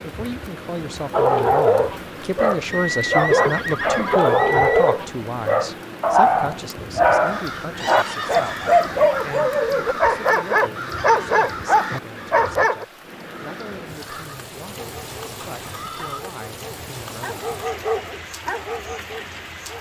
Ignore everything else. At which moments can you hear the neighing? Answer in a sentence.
The neighing can be heard from 2.7 to 5.0 s, from 7.8 to 9.4 s and from 15.4 to 16.2 s.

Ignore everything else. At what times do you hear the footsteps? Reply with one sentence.
You can't hear the footsteps here.